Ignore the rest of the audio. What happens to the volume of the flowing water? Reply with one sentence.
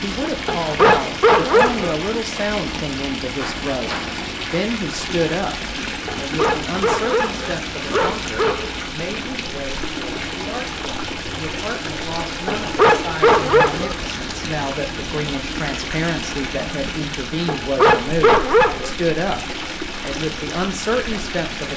The volume of the flowing water stays about the same.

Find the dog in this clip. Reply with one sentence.
The dog can be heard from 0.5 to 1.9 s, from 6.0 to 8.8 s, from 12.4 to 14.2 s and from 17.4 to 18.9 s.